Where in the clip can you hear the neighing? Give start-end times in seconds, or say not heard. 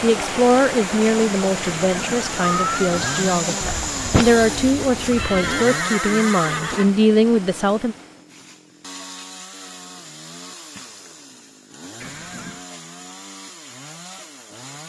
1.6-3.4, 5.1-7.0, 12.0-12.7.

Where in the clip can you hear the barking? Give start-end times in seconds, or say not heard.
not heard.